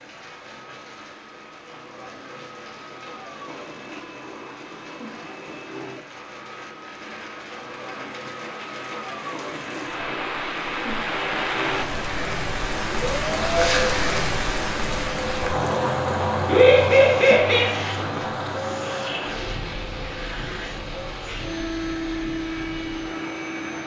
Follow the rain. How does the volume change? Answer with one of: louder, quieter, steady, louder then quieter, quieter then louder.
louder then quieter.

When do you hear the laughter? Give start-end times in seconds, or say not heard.
16.4-17.8.